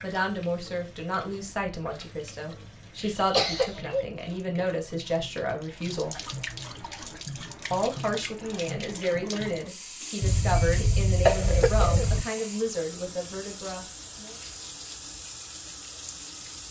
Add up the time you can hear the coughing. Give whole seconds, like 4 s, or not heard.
3 s.